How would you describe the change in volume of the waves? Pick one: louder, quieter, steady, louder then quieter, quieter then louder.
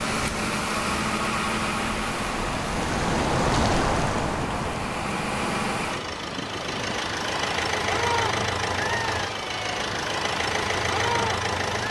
louder then quieter.